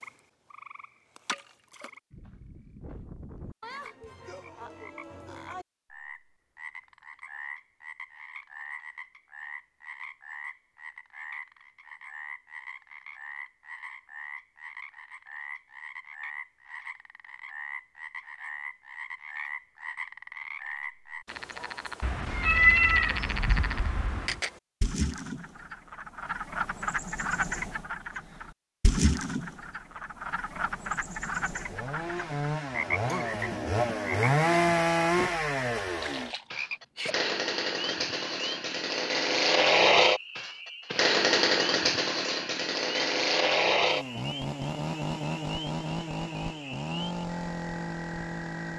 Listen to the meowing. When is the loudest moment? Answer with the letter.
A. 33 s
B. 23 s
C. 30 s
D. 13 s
B.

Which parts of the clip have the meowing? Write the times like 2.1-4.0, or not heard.
22.0-24.4.